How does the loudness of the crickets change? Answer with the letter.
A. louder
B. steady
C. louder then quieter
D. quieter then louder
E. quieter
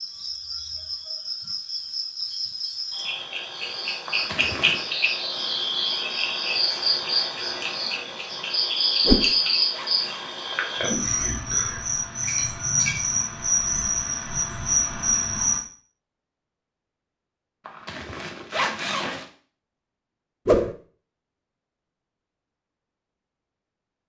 A.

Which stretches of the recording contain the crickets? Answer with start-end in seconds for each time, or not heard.
0.0-15.6.